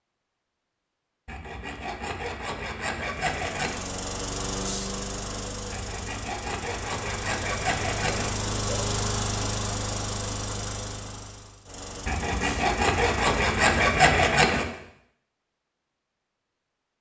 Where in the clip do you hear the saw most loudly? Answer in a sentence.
The loudest moment of the saw is at 14 seconds.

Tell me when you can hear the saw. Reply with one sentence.
You can hear the saw from 1.2 to 3.8 s, from 5.7 to 8.4 s and from 12.1 to 14.7 s.